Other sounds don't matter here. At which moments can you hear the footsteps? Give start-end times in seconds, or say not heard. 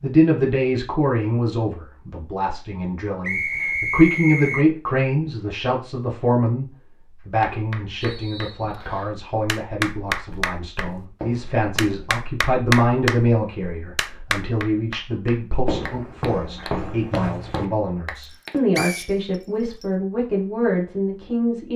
10.3-12.2, 15.7-17.6.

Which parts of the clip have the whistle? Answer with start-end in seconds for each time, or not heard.
3.2-4.7, 8.0-9.2, 18.8-19.9.